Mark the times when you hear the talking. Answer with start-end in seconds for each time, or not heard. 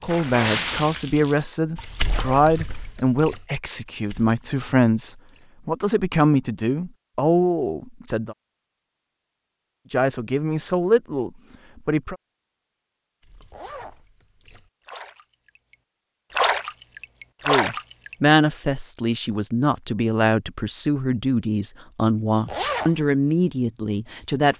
0.0-8.3, 9.9-12.2, 17.4-24.5.